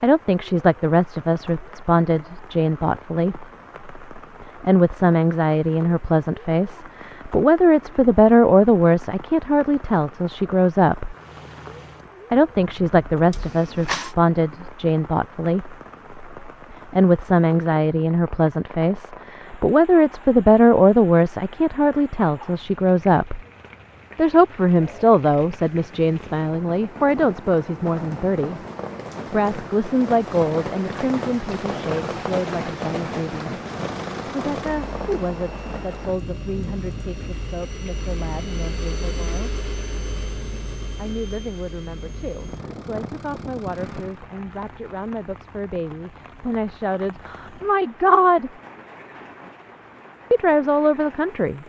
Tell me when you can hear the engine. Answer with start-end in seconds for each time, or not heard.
11.1-14.2, 33.6-44.2.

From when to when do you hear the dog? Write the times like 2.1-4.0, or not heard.
not heard.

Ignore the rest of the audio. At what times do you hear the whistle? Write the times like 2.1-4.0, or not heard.
not heard.